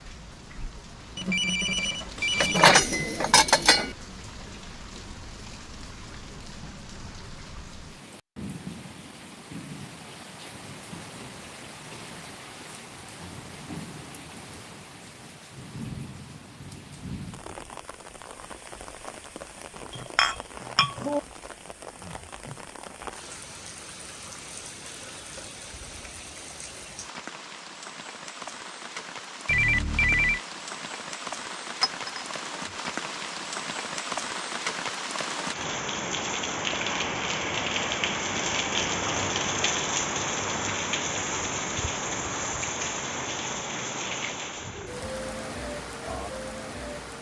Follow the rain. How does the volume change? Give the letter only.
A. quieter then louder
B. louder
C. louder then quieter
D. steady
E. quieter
B.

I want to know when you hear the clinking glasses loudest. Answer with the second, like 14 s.
3 s.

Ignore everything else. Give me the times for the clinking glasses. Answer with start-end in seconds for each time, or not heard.
2.4-4.0, 19.9-21.2, 31.8-32.2.